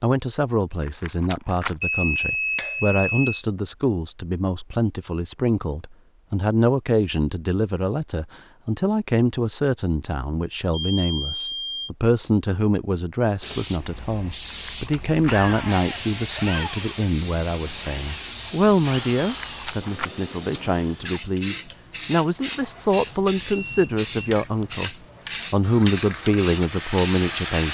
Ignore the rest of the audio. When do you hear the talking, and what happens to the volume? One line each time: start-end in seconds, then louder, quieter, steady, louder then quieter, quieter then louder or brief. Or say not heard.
0.0-27.6 steady.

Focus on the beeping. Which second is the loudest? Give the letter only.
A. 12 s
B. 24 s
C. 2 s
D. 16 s
C.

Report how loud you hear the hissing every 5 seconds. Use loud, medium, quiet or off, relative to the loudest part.
off, off, loud, loud, loud, loud.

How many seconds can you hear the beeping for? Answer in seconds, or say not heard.
5 s.